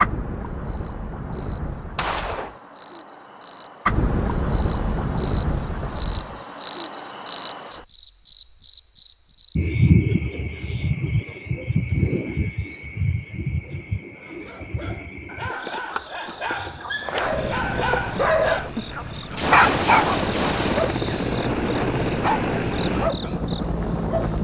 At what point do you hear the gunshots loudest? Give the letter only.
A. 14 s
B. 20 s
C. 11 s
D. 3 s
B.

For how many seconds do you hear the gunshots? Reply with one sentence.
The gunshots can be heard for 2 seconds in total.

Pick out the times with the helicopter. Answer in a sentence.
You can hear the helicopter from 17.1 to 24.4 s.